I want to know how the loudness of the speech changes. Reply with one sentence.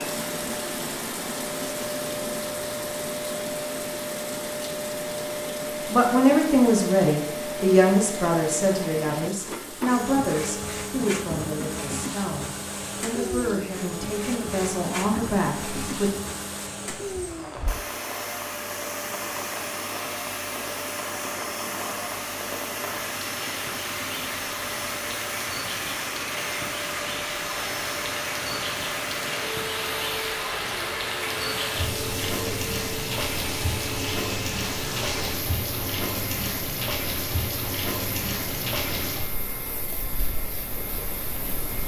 The volume of the speech goes down.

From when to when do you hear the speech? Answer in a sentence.
The speech can be heard from 5.8 to 16.1 s.